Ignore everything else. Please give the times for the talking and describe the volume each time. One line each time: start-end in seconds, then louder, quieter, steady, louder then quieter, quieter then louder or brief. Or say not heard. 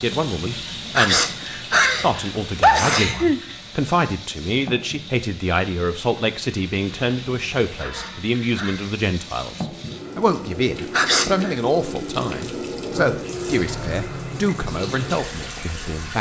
0.0-1.2 brief
2.0-16.1 steady.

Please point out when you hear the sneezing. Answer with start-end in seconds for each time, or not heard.
0.9-3.4, 7.8-8.9, 10.9-11.6.